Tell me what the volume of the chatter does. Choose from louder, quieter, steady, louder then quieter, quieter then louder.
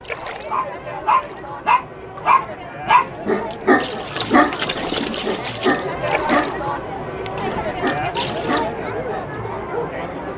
louder.